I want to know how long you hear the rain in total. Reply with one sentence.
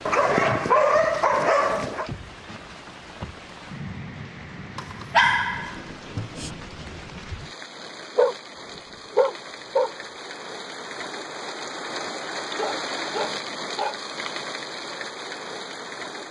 You can hear the rain for 16 seconds altogether.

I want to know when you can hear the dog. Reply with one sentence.
The dog can be heard from 0.1 to 2.1 s, from 4.8 to 6.5 s, from 8.2 to 9.9 s and from 12.4 to 14.0 s.